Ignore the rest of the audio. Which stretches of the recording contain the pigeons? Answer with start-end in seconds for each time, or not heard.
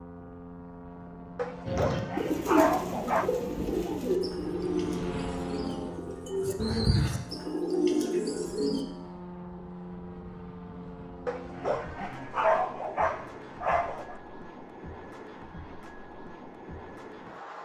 1.6-8.8.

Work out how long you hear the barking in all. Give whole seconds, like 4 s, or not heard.
5 s.